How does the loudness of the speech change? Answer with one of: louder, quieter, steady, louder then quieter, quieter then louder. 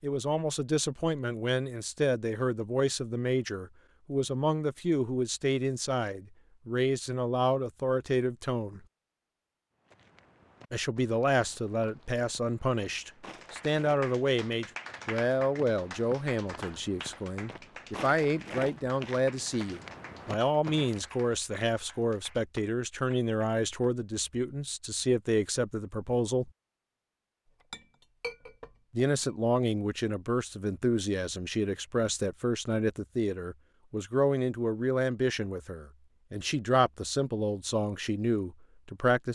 steady.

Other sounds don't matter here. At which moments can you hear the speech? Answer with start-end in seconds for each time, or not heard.
0.0-8.8, 10.7-26.5, 28.9-39.3.